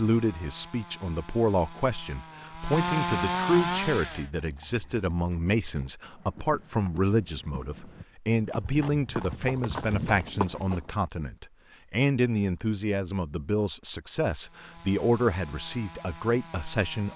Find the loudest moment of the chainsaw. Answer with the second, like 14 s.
3 s.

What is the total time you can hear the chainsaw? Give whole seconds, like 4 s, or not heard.
7 s.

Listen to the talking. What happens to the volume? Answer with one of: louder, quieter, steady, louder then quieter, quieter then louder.
steady.